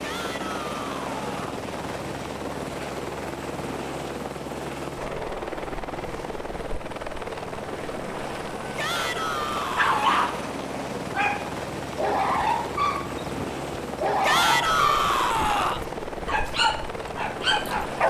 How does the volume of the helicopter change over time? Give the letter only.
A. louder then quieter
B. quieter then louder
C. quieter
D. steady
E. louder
D.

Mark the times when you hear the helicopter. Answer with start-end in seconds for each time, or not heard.
0.0-18.0.